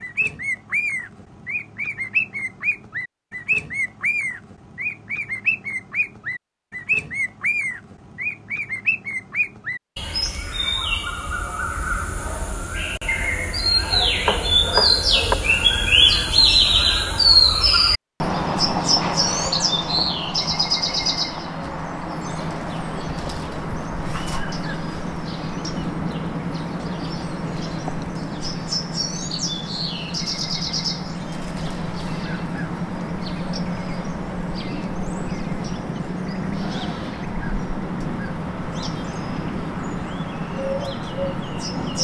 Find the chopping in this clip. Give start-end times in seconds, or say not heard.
13.8-15.3.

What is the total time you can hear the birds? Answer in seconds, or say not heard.
42 s.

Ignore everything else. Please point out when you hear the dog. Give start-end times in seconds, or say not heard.
not heard.